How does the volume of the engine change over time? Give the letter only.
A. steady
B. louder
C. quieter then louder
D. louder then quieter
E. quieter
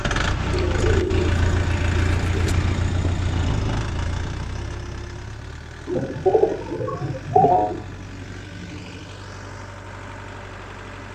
E.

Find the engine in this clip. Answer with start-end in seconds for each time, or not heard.
0.0-11.0.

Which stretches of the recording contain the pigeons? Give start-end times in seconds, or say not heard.
0.5-2.5, 5.8-7.8.